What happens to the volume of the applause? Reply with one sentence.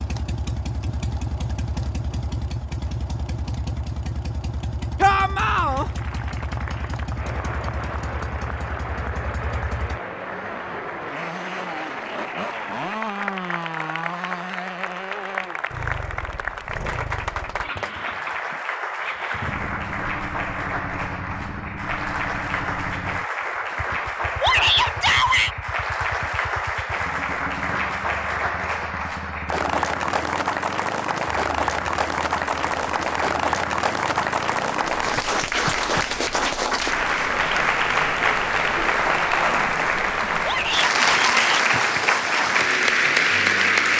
The volume of the applause goes up.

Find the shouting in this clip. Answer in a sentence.
The shouting can be heard from 5.0 to 5.8 s, from 24.4 to 25.5 s and from 40.4 to 41.6 s.